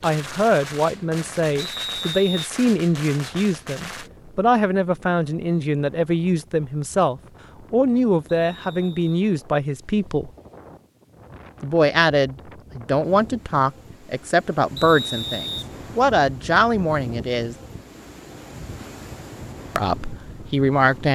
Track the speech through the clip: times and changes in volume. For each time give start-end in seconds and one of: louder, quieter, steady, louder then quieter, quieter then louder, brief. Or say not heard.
0.0-10.3 steady
11.6-17.6 steady
19.8-21.0 brief.